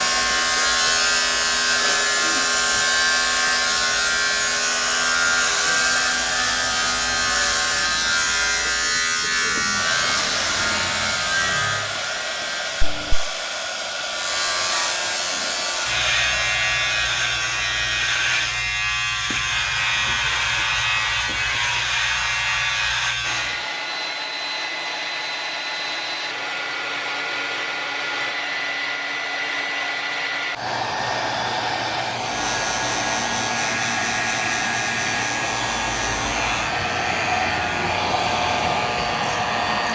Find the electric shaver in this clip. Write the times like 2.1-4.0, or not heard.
0.0-23.6, 32.1-39.9.